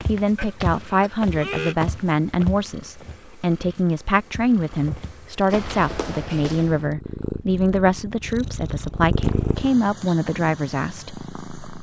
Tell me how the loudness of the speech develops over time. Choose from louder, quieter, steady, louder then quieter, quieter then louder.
steady.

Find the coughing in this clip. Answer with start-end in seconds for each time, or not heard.
0.3-1.8.